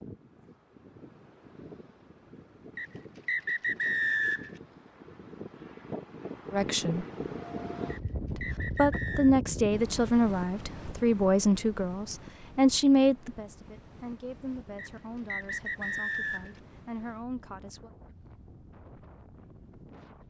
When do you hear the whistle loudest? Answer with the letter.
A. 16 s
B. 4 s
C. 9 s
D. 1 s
B.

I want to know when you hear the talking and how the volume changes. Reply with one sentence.
You can hear the talking briefly from 6.5 to 7.0 s; and from 8.3 to 17.9 s, getting quieter.